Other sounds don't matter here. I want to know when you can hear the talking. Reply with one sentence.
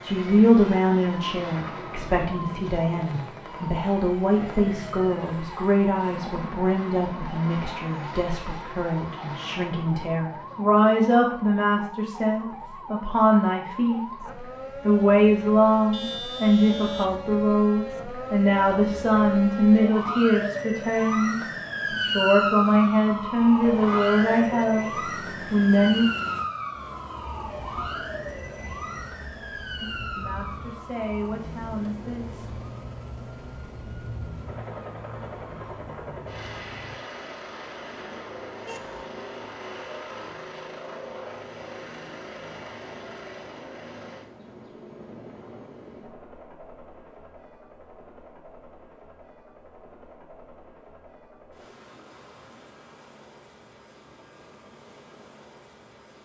You can hear the talking from 0.0 to 14.0 s, from 14.8 to 24.9 s, from 25.5 to 26.1 s and from 29.8 to 32.6 s.